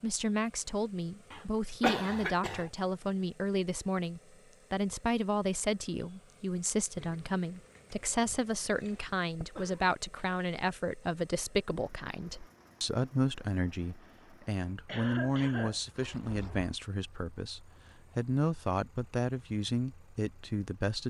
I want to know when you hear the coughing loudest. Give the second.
2 s.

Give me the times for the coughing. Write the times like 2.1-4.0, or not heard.
1.3-2.6, 9.3-10.2, 14.8-16.1.